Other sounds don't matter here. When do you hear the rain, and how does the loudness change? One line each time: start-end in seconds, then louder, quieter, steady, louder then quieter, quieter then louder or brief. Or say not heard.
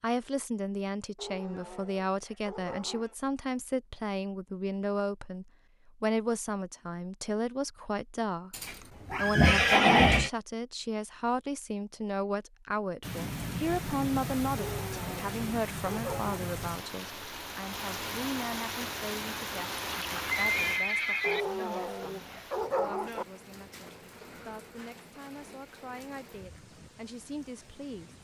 13.0-28.1 quieter.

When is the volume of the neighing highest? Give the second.
10 s.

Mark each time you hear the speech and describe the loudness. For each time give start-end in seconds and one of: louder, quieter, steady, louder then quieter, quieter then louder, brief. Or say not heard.
0.0-28.1 quieter.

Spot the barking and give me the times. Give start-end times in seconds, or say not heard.
1.1-3.1, 14.6-16.5, 21.2-23.2.